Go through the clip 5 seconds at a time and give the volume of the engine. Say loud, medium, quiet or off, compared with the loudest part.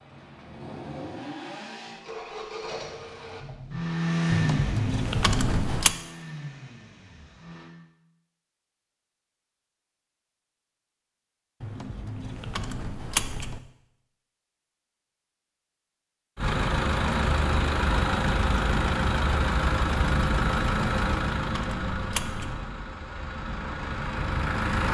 medium, quiet, off, loud, loud.